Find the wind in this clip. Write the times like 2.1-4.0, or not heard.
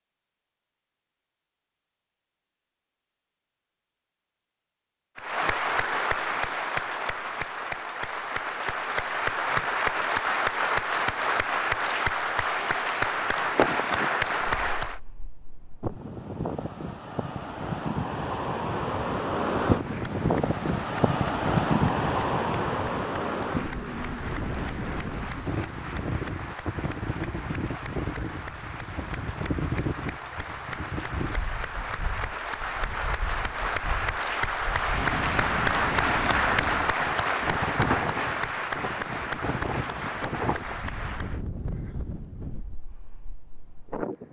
13.1-44.2.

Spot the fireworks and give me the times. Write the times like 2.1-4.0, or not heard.
not heard.